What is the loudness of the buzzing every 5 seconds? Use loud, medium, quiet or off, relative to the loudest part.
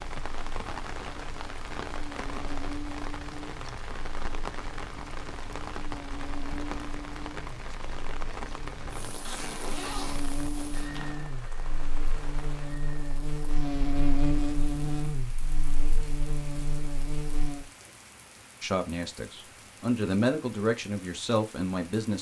medium, medium, loud, loud, off.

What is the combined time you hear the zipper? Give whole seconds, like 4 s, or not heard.
2 s.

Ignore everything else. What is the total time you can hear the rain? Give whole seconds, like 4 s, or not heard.
22 s.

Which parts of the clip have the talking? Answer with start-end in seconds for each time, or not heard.
18.6-22.1.